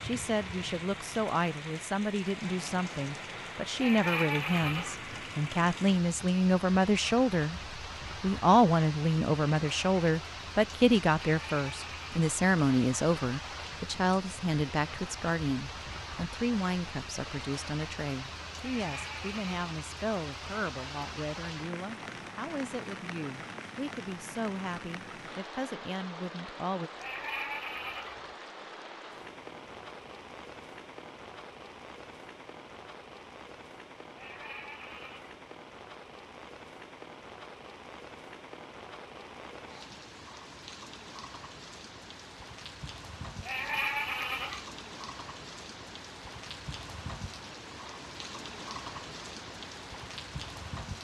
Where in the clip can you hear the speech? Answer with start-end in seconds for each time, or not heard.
0.0-26.9.